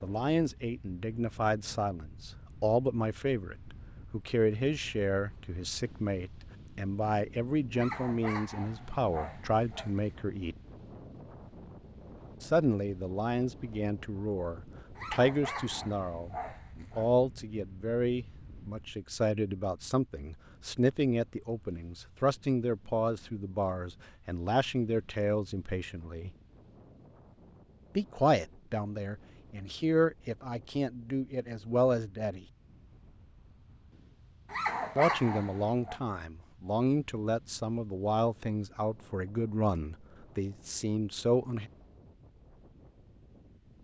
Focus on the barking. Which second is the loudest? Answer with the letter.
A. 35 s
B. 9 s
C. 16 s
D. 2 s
A.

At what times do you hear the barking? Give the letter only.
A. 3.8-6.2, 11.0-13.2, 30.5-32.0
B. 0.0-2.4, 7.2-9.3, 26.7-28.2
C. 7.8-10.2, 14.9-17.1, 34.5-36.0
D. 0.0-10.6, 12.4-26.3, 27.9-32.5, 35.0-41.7
C.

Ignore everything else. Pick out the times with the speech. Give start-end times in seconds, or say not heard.
0.0-10.6, 12.4-26.3, 27.9-32.5, 35.0-41.7.